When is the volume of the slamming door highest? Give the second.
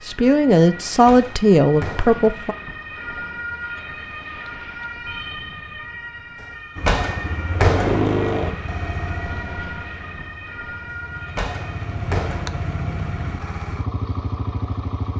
8 s.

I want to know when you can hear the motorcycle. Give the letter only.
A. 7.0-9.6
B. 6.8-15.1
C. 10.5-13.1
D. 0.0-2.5
B.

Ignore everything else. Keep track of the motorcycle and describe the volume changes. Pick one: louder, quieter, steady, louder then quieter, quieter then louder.
quieter then louder.